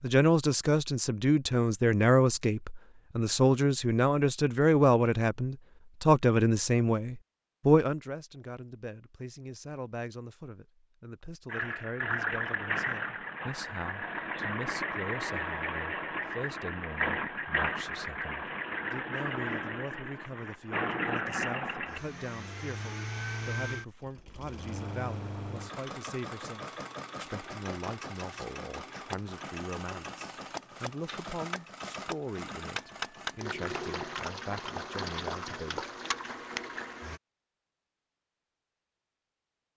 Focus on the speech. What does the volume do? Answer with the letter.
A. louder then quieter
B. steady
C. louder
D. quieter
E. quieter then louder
D.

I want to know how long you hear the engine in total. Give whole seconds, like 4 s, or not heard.
26 s.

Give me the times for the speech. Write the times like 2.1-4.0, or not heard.
0.0-35.9.